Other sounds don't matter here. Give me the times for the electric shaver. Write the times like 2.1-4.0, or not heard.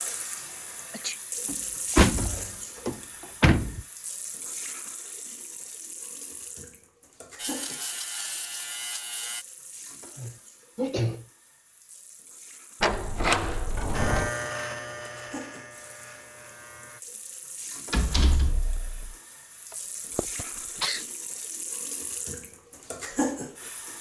7.3-9.4, 13.9-17.0.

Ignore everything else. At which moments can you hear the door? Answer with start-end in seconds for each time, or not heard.
1.4-3.9, 12.8-14.3, 17.9-19.1.